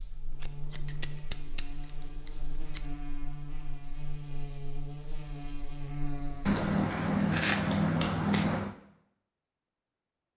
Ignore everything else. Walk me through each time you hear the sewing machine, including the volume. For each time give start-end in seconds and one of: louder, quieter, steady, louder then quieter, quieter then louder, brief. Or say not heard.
not heard.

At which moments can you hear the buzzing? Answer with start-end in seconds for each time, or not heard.
0.0-6.7.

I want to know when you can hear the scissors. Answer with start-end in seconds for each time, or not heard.
0.3-2.9, 6.5-8.8.